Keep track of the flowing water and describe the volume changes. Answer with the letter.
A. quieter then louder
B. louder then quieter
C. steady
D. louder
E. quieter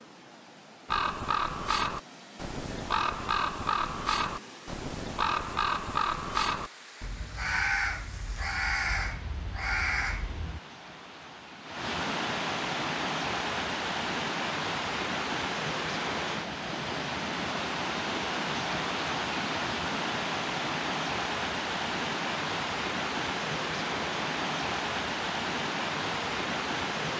D.